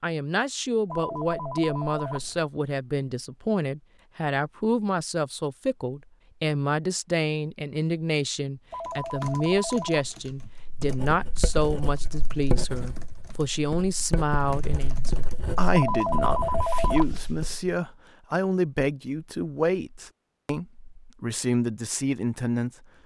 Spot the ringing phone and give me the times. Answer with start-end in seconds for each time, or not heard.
0.8-2.5, 8.7-10.3, 15.7-17.6.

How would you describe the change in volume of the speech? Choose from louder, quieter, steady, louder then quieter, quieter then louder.
steady.